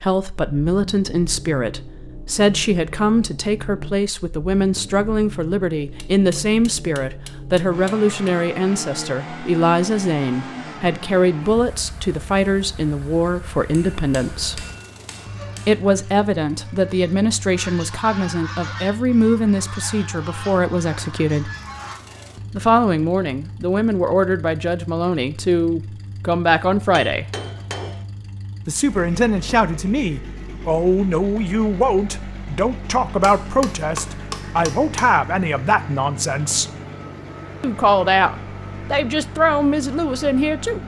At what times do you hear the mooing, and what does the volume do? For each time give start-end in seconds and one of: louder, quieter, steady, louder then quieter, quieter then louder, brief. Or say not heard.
not heard.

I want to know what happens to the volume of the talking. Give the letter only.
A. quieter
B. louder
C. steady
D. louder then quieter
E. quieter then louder
C.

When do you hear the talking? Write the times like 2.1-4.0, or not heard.
0.0-14.7, 15.7-21.5, 22.5-27.2, 28.6-36.6, 37.6-40.8.